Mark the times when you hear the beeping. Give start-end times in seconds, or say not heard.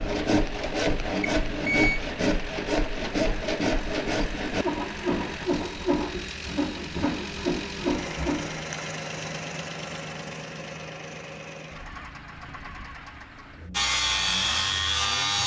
1.2-2.0.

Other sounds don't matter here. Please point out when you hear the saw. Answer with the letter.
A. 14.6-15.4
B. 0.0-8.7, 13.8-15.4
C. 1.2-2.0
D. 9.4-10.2
B.